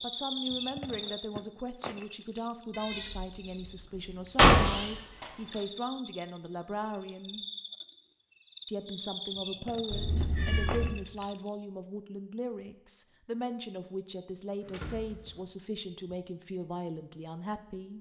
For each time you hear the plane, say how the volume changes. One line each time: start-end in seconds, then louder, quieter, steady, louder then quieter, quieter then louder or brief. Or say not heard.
not heard.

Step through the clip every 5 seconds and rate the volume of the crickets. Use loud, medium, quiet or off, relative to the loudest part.
loud, loud, loud, off.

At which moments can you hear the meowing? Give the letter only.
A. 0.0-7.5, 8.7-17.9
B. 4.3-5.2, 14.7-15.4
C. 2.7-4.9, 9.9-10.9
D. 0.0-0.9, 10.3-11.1
C.